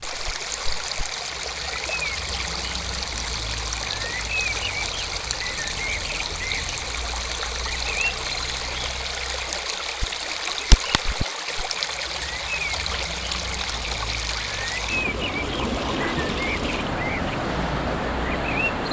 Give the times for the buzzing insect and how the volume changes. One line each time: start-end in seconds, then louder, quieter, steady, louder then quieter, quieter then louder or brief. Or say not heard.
not heard.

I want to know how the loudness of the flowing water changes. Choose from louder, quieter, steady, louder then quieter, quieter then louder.
steady.